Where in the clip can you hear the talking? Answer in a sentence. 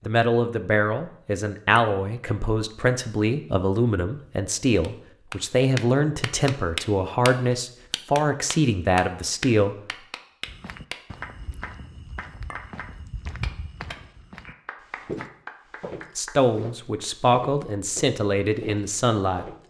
The talking can be heard from 0.1 to 9.8 s and from 16.1 to 19.4 s.